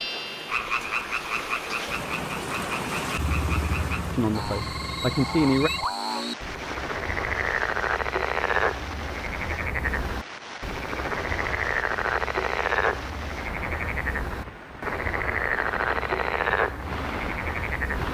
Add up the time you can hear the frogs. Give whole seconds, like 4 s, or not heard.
18 s.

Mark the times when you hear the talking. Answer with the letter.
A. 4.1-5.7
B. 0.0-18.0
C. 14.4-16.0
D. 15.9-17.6
A.